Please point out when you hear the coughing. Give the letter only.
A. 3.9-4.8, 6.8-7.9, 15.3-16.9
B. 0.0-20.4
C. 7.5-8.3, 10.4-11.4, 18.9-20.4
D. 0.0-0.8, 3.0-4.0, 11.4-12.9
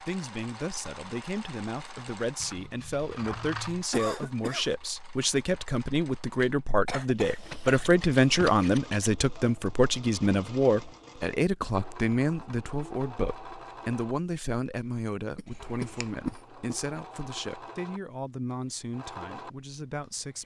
A.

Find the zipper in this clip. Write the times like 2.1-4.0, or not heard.
not heard.